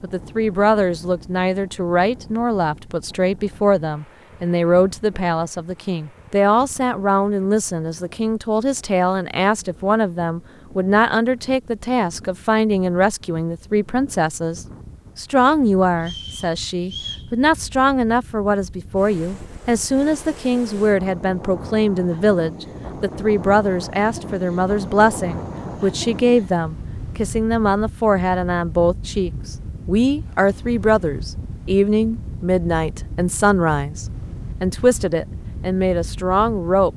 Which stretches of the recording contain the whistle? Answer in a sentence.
You can hear the whistle from 16.0 to 17.3 s.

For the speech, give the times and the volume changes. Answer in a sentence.
You can hear the speech from 0.0 to 36.9 s, at a steady volume.